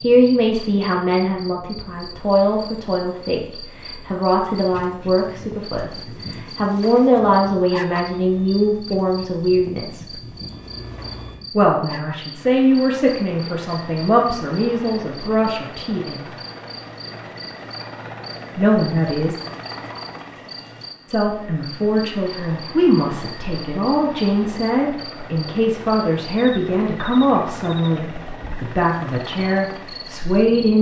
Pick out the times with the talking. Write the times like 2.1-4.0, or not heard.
0.0-10.1, 11.6-16.2, 18.6-19.4, 21.1-30.7.